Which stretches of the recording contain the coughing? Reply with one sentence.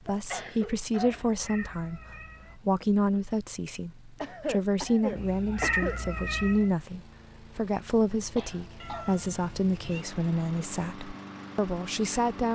You can hear the coughing from 0.1 to 1.4 s, from 4.2 to 6.0 s and from 8.3 to 9.2 s.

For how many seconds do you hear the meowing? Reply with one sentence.
The meowing can be heard for 4 seconds in total.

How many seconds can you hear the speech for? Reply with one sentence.
You can hear the speech for 12 seconds altogether.